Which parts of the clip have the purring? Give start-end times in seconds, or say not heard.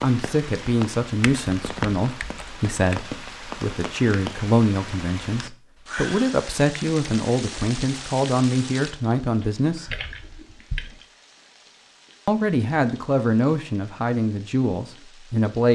not heard.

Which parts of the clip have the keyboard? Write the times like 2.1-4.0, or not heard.
1.2-3.0, 9.4-11.1.